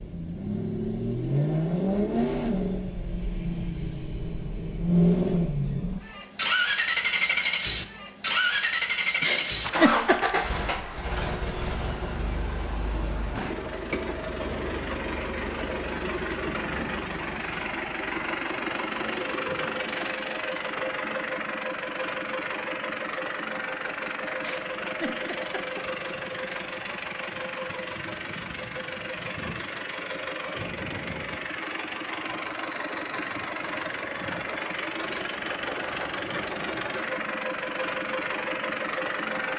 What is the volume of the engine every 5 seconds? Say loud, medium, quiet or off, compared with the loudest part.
loud, loud, medium, medium, medium, medium, medium, medium.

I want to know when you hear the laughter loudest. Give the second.
10 s.